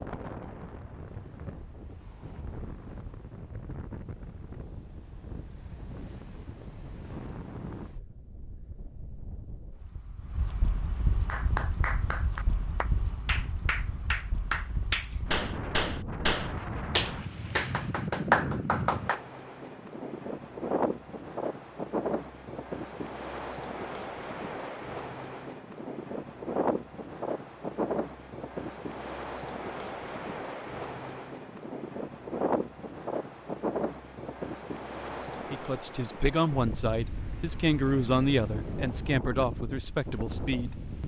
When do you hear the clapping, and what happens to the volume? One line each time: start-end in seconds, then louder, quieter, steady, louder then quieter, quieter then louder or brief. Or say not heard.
11.2-19.2 louder.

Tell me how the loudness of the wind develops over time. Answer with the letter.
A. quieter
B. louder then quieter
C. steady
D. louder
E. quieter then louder
D.